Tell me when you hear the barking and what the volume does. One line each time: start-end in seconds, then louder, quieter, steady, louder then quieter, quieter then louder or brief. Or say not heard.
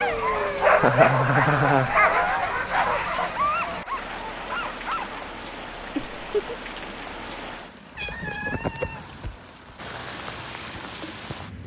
0.0-5.3 quieter.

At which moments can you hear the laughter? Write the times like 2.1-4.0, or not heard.
0.8-1.9, 6.0-6.5.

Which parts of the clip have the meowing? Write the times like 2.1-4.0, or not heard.
8.0-9.2.